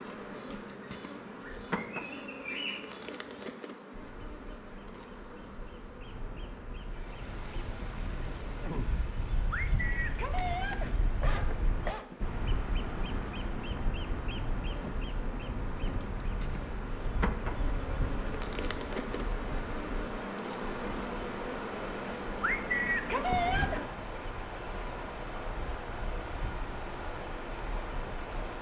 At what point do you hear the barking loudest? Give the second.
23 s.